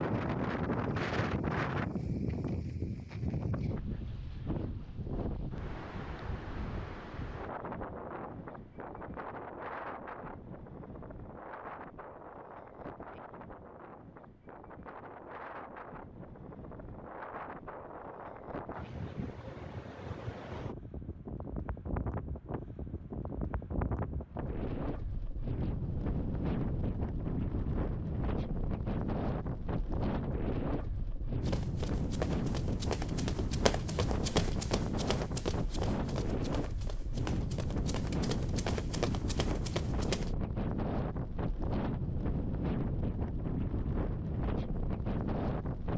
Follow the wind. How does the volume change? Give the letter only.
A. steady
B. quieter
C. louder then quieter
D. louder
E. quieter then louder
E.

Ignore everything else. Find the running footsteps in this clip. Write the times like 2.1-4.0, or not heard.
31.4-40.4.